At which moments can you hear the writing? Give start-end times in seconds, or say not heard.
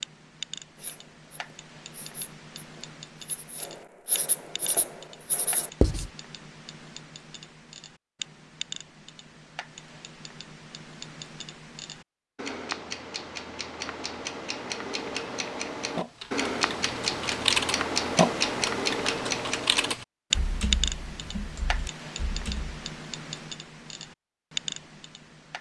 0.8-6.1.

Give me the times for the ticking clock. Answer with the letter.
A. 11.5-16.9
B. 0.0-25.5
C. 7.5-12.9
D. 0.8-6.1
B.